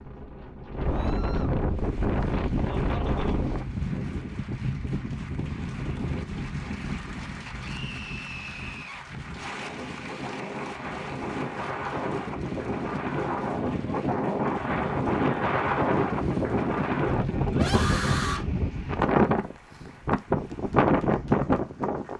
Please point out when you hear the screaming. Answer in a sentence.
You can hear the screaming from 0.8 to 1.6 s, from 7.6 to 9.1 s and from 17.5 to 18.4 s.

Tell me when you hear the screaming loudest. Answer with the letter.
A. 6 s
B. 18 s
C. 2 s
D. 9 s
B.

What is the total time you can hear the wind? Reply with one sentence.
The wind can be heard for 22 seconds in total.